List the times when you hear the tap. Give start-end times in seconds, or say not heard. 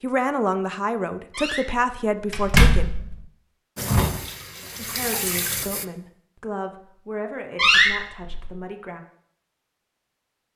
3.8-5.8.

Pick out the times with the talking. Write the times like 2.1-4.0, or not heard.
0.0-2.9, 4.8-9.0.